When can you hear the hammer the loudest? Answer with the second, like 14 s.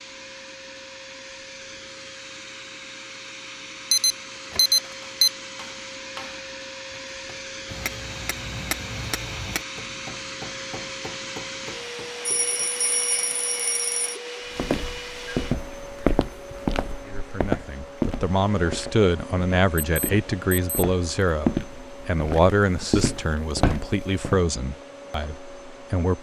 9 s.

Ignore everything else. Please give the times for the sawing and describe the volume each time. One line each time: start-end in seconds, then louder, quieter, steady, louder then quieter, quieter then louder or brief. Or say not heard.
not heard.